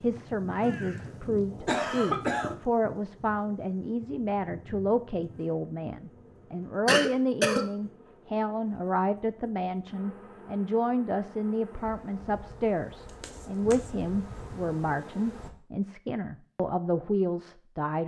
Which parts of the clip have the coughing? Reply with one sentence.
You can hear the coughing from 0.6 to 2.5 s, from 6.8 to 7.7 s and from 13.2 to 13.9 s.